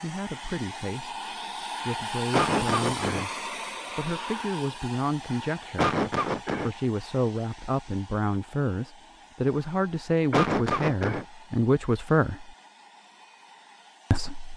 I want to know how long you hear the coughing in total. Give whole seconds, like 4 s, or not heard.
3 s.